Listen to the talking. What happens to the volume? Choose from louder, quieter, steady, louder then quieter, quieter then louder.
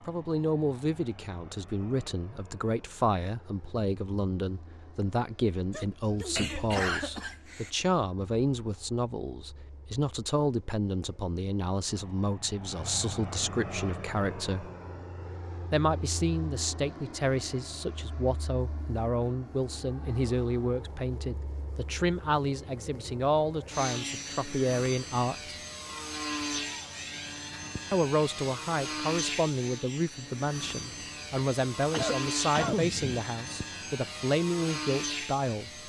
steady.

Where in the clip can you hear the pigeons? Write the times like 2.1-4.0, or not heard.
not heard.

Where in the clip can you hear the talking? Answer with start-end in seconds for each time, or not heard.
0.1-14.7, 15.7-25.6, 27.9-35.8.